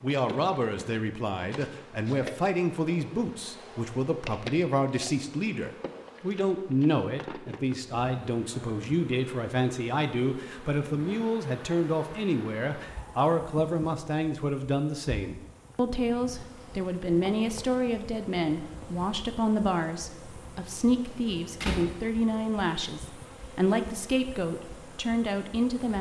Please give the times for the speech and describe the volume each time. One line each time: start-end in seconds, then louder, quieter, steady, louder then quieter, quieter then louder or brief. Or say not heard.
0.0-25.9 steady.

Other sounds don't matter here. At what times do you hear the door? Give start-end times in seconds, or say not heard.
21.1-21.9.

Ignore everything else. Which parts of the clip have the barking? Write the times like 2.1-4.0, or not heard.
not heard.